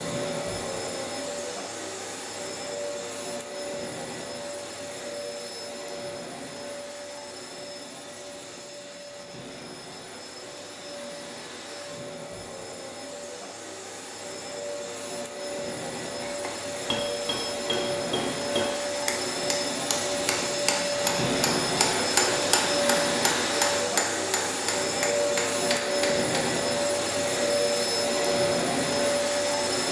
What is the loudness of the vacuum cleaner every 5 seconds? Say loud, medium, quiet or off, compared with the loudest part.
medium, quiet, quiet, medium, loud, loud.